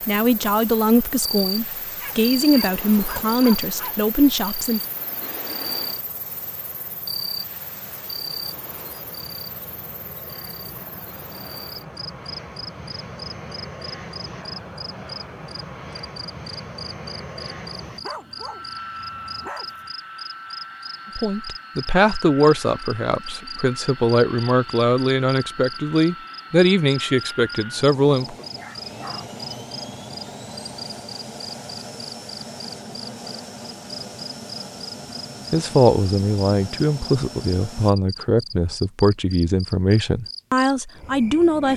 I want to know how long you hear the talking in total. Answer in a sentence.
The talking can be heard for 18 seconds in total.